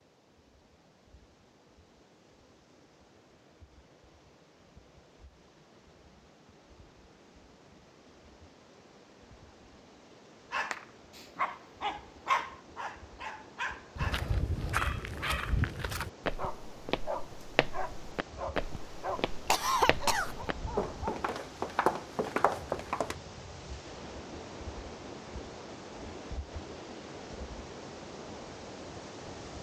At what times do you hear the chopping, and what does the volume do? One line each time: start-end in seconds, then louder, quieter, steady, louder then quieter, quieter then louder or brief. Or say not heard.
not heard.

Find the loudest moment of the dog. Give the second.
12 s.